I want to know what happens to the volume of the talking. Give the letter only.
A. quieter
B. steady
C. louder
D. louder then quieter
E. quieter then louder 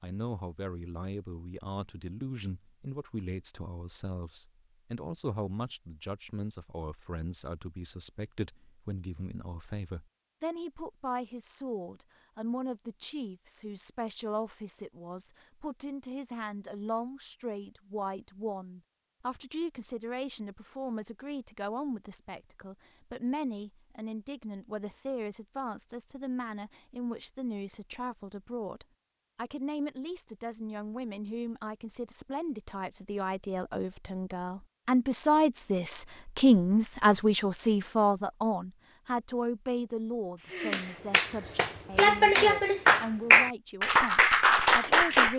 C.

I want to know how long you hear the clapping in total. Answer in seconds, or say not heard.
5 s.